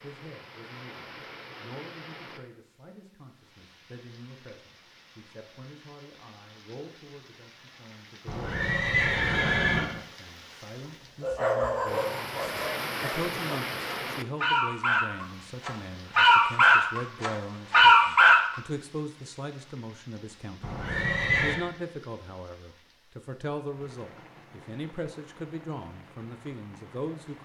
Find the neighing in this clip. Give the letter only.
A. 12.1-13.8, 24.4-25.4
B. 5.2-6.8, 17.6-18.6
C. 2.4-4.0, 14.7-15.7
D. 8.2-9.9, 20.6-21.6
D.